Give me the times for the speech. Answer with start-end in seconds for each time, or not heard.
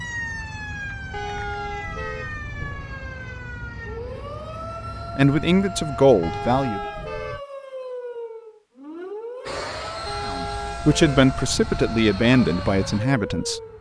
5.2-6.8, 10.2-13.6.